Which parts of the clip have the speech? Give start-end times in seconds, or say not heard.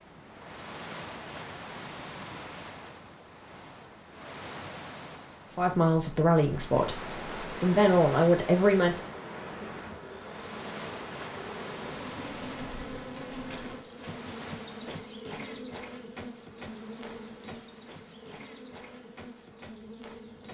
5.5-9.0.